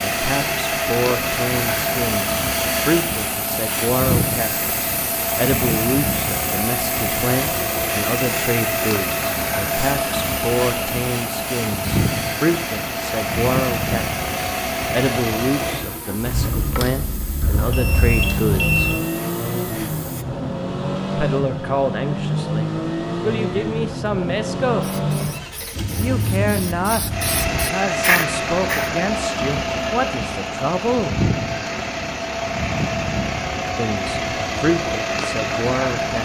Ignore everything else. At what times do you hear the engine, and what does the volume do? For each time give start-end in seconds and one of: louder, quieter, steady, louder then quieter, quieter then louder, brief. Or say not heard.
0.0-36.2 steady.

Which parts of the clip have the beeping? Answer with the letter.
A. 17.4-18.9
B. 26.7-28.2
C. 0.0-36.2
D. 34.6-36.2
A.